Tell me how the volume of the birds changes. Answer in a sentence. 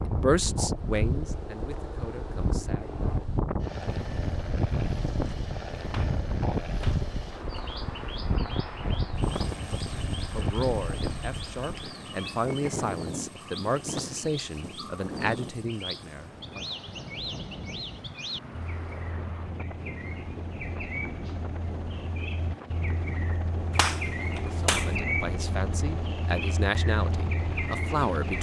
The loudness of the birds goes up.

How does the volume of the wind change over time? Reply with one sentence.
The loudness of the wind goes down.